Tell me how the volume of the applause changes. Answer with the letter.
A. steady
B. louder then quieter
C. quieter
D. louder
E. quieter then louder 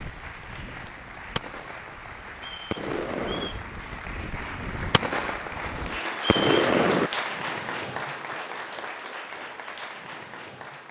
B.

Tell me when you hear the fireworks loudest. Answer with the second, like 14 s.
7 s.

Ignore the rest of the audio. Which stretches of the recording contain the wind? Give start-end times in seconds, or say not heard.
0.0-6.2.